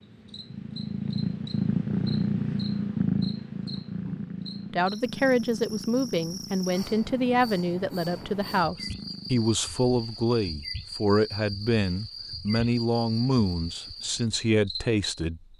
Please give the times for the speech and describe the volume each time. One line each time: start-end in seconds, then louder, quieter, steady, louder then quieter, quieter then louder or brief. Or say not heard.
4.7-15.5 steady.